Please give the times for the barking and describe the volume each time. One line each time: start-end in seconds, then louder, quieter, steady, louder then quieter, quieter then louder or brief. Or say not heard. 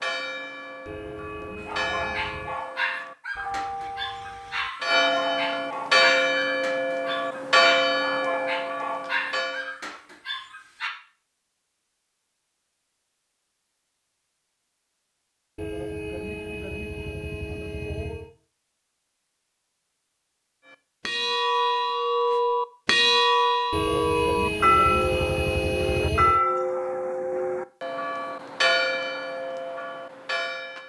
1.6-10.9 steady.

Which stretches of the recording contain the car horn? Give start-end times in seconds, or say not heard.
0.8-2.5, 15.6-18.3, 23.7-26.4.